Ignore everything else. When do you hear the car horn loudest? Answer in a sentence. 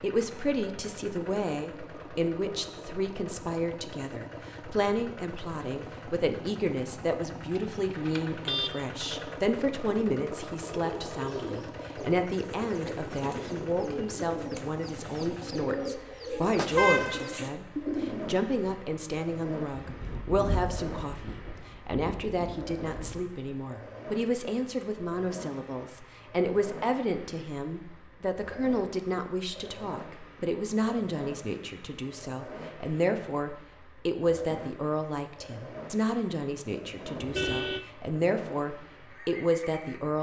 The volume of the car horn peaks at 17 seconds.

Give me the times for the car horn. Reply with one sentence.
The car horn can be heard from 7.5 to 8.9 s, from 16.4 to 17.4 s and from 37.1 to 37.9 s.